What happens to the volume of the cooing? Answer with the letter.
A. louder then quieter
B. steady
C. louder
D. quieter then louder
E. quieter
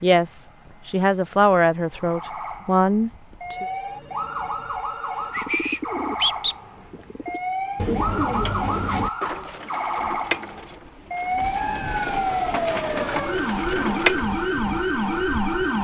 D.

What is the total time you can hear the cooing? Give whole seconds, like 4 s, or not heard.
9 s.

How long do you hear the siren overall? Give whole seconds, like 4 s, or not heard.
14 s.